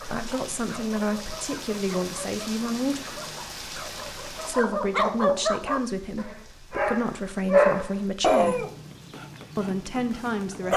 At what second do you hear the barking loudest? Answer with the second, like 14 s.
8 s.